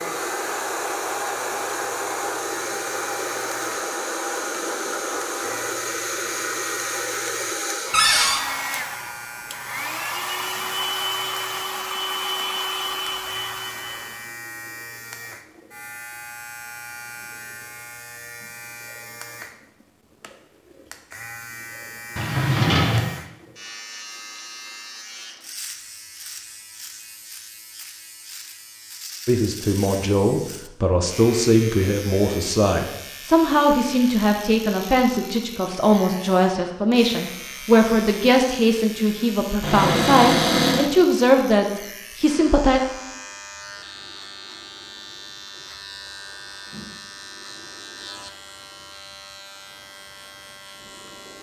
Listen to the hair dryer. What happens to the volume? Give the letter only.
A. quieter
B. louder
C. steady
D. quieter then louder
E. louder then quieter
C.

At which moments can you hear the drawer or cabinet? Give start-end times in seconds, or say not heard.
7.9-8.4, 22.1-23.1, 39.6-40.9.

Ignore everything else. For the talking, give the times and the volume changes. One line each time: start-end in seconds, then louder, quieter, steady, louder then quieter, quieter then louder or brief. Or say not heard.
29.2-42.8 steady.